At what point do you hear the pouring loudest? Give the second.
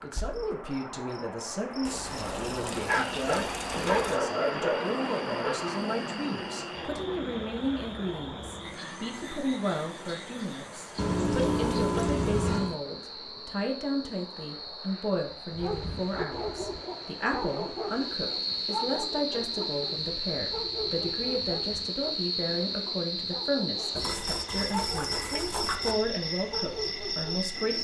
12 s.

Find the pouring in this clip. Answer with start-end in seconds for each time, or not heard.
1.9-4.2, 10.9-12.8, 23.9-25.9.